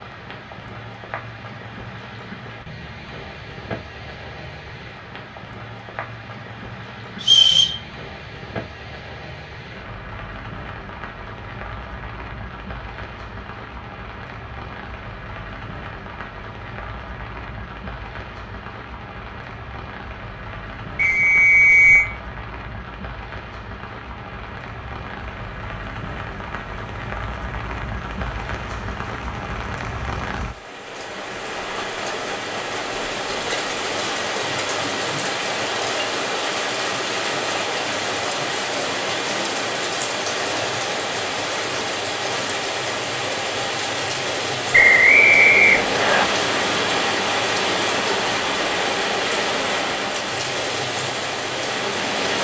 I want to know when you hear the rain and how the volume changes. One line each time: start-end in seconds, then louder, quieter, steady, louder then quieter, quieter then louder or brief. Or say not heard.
0.0-52.3 louder.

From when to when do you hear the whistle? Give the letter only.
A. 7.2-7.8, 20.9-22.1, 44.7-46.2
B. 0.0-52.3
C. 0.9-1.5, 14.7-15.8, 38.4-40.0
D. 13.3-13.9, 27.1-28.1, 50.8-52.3
A.